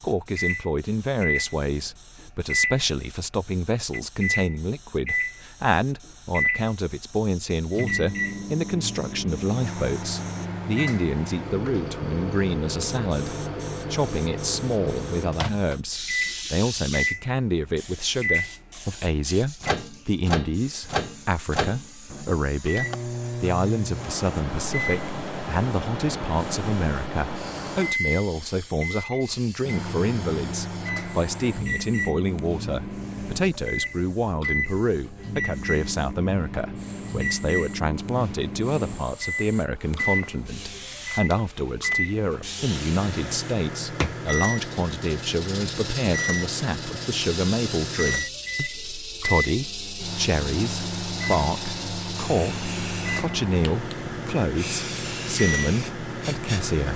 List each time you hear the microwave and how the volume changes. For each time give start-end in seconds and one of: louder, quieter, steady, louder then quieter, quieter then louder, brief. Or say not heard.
0.1-56.9 steady.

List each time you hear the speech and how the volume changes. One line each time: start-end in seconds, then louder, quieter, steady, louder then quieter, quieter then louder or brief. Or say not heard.
0.0-56.9 steady.